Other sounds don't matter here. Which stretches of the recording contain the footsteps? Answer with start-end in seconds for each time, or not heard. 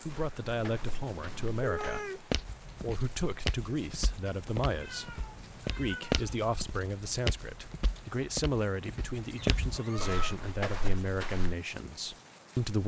0.1-11.6.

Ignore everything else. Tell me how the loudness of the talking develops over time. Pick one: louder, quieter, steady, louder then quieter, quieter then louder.
steady.